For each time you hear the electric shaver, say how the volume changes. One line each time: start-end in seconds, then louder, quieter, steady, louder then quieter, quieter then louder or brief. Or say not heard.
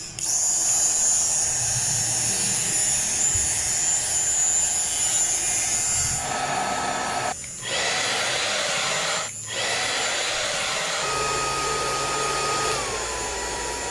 0.0-13.8 quieter.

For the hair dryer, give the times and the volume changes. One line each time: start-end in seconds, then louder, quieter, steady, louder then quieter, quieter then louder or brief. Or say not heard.
0.1-13.8 louder.